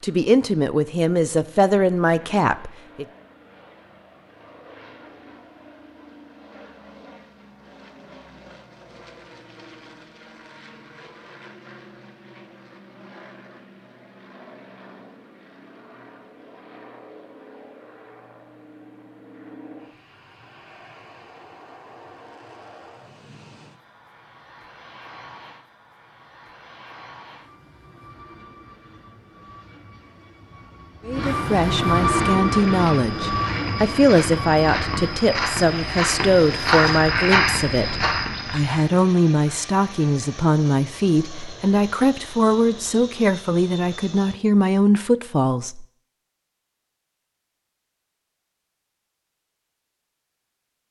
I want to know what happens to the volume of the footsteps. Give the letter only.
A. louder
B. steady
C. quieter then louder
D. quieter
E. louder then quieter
A.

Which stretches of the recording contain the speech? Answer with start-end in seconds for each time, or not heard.
0.0-3.0, 31.1-45.9.